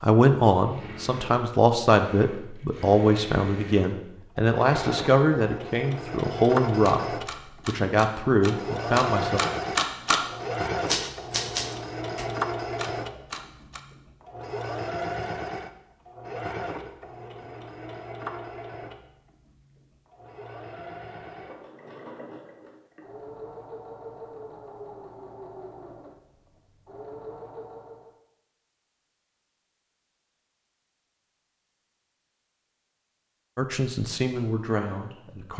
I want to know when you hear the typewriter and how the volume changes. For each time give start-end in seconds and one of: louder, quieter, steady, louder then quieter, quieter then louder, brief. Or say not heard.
6.7-13.8 louder then quieter.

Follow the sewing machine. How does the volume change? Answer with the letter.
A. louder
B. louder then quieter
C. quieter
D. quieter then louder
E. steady
B.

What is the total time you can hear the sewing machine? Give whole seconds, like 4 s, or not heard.
28 s.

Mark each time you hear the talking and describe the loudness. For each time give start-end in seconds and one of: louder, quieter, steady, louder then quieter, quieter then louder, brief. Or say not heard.
0.0-9.4 steady
33.5-35.5 brief.